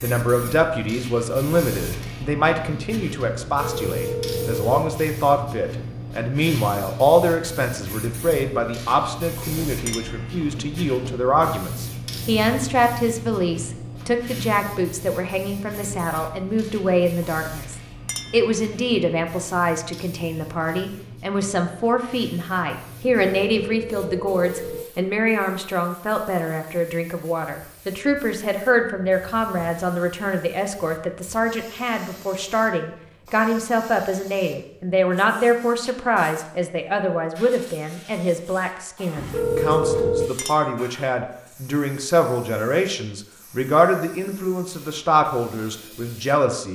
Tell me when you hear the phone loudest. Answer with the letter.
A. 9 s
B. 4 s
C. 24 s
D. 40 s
D.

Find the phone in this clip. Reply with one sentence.
The phone can be heard from 3.4 to 4.8 s, from 23.2 to 24.9 s and from 39.1 to 40.3 s.